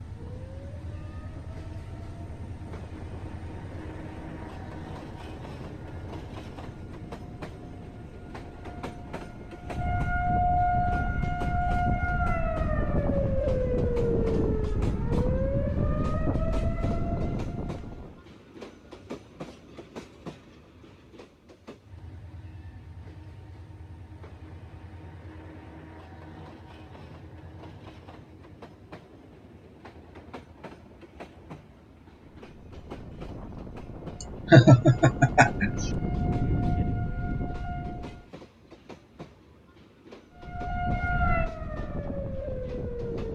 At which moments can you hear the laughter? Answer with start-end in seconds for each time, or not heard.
34.5-35.9.